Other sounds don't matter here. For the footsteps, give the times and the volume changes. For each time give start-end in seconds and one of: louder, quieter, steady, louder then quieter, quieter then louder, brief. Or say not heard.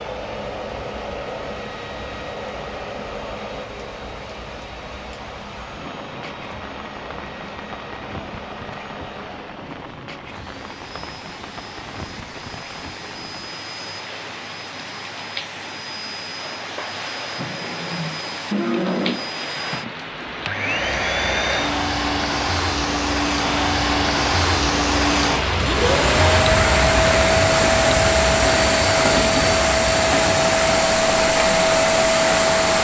not heard.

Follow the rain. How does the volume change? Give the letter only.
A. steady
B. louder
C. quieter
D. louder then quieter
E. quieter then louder
B.